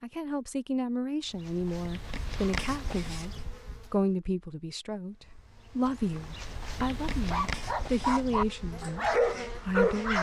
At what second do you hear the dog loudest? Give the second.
9 s.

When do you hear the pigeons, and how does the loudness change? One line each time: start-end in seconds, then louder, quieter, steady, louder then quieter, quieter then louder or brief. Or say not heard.
not heard.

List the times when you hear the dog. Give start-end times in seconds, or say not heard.
7.2-10.1.